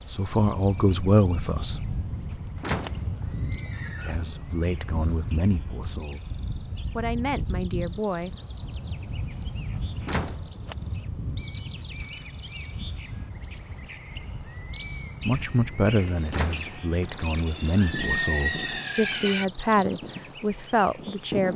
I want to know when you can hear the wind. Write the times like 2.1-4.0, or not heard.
0.0-21.5.